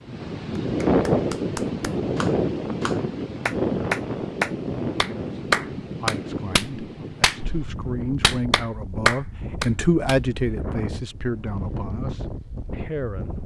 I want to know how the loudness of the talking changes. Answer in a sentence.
The volume of the talking goes up, then down.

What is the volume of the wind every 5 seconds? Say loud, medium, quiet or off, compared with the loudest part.
loud, medium, medium.